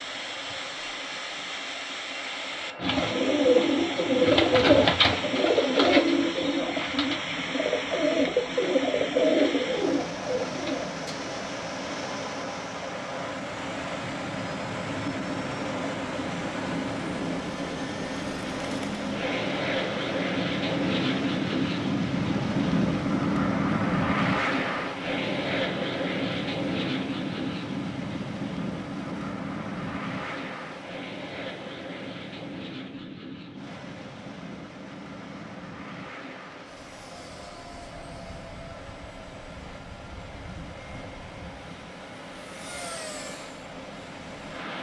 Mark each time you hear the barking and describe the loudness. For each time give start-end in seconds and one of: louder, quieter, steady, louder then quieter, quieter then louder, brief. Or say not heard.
not heard.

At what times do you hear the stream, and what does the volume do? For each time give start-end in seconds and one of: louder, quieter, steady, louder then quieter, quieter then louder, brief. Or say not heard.
0.0-44.7 quieter.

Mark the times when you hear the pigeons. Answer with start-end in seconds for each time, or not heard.
2.8-11.2.